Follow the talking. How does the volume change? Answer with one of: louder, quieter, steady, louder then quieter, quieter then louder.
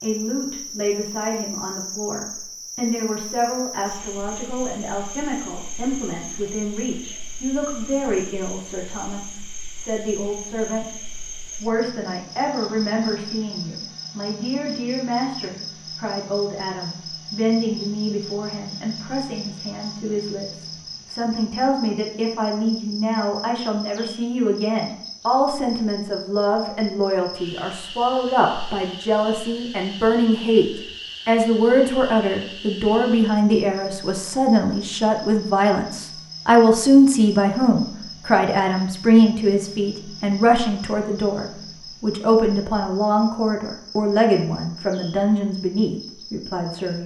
louder.